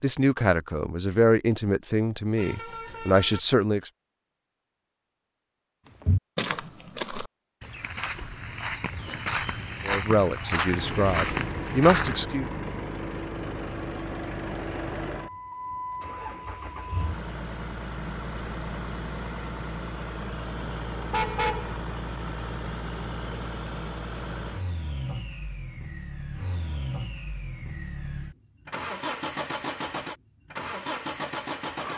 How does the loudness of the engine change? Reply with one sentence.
The volume of the engine stays about the same.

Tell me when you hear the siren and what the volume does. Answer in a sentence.
The siren can't be heard in this clip.